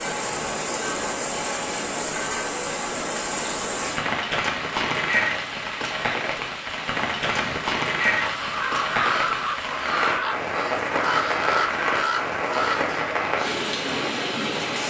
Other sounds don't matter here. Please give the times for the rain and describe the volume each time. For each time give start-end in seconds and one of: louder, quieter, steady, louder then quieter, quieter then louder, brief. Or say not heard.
0.0-14.8 steady.